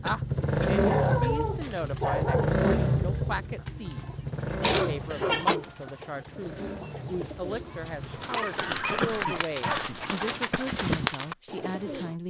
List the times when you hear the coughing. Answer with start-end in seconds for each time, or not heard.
0.1-1.4, 4.6-5.5, 8.6-10.6.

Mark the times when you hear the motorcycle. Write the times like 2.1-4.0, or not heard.
0.0-8.3.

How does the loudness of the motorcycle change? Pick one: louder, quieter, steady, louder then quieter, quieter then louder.
quieter.